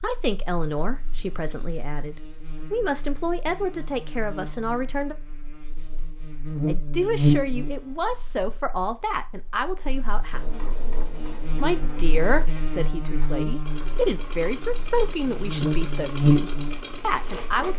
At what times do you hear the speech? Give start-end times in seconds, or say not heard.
0.0-5.2, 6.7-10.4, 11.6-17.7.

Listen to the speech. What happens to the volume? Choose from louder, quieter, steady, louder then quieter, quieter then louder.
steady.